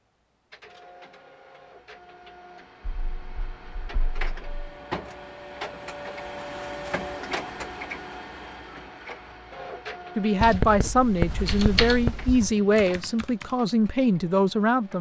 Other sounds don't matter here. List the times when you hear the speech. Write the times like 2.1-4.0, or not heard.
10.2-14.9.